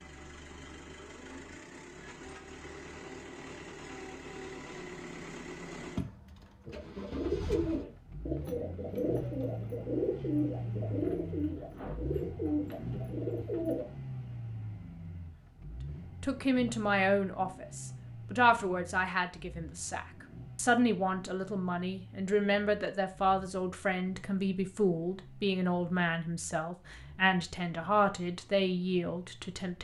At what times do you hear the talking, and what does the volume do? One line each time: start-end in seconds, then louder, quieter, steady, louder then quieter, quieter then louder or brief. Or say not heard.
16.2-29.7 steady.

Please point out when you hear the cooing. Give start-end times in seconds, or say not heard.
6.7-13.8.